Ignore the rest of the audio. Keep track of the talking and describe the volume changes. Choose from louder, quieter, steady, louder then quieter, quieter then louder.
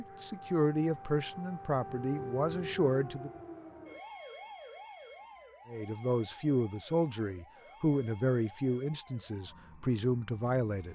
steady.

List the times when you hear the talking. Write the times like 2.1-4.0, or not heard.
0.0-3.3, 5.7-10.9.